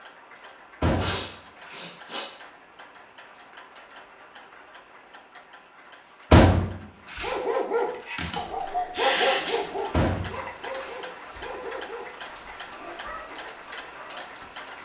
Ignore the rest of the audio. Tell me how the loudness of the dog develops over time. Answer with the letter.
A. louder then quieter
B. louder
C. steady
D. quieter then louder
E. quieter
E.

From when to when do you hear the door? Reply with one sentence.
The door can be heard from 0.8 to 1.9 s, from 6.3 to 7.3 s and from 9.9 to 11.0 s.